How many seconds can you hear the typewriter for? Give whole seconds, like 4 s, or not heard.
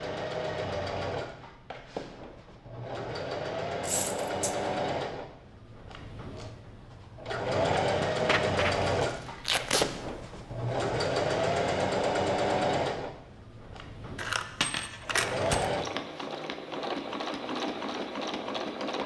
not heard.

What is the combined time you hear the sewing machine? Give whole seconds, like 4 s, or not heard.
19 s.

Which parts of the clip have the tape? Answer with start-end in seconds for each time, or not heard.
9.4-9.9.